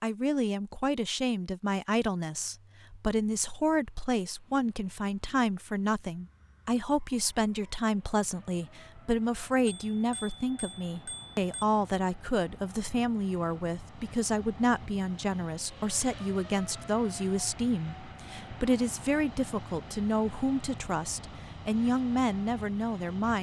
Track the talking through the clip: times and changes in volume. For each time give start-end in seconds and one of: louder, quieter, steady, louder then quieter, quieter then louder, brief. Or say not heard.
0.0-23.3 steady.